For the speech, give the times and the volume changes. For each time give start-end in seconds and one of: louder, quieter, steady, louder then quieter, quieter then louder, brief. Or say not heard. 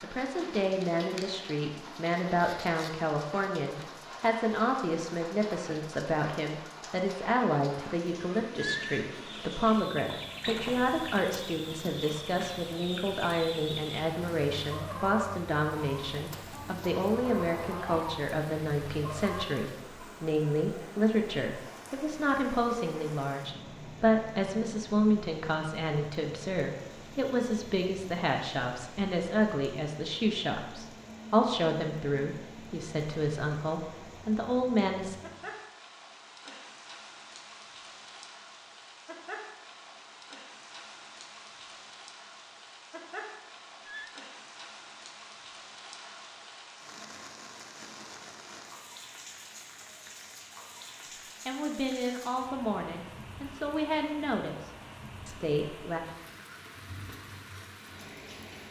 0.0-35.1 steady
51.5-56.0 steady.